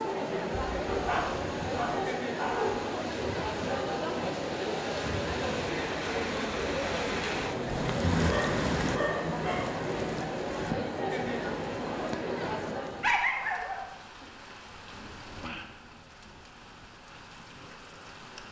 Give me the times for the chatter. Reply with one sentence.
The chatter can be heard from 0.0 to 13.2 s.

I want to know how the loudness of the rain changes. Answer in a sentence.
The loudness of the rain goes up, then down.